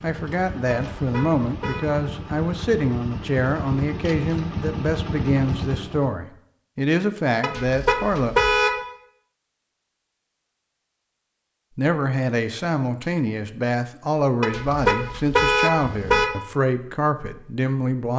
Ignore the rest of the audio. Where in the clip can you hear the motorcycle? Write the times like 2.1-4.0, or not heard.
0.0-6.1.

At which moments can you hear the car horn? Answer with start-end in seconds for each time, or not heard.
0.7-1.8, 7.4-8.8, 14.4-16.3.